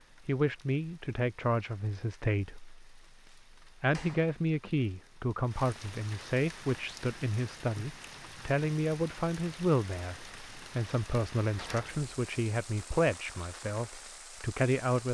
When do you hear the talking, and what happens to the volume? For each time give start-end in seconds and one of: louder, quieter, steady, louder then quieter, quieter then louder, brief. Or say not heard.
0.2-2.8 brief
3.8-15.0 steady.